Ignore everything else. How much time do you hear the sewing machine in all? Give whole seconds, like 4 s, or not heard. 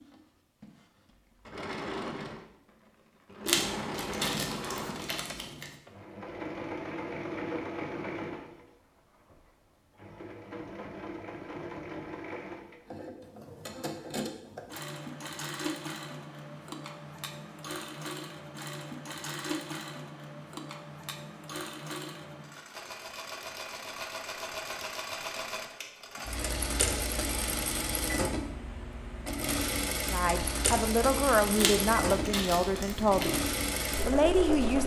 35 s.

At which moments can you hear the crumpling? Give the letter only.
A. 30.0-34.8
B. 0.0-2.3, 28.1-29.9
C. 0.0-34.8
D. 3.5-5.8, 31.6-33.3
D.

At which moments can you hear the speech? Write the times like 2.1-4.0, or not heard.
30.0-34.8.